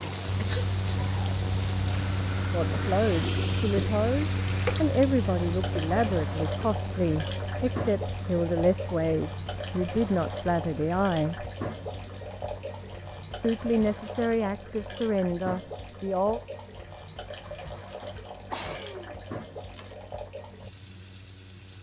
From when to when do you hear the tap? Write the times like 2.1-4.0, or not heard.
0.0-21.7.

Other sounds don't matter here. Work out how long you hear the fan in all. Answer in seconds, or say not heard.
22 s.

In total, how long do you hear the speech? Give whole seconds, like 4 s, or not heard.
12 s.